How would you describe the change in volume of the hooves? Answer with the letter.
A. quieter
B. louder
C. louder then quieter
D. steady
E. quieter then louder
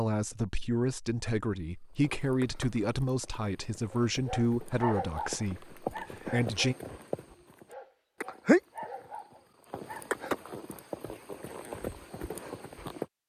C.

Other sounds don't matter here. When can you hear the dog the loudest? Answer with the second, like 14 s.
5 s.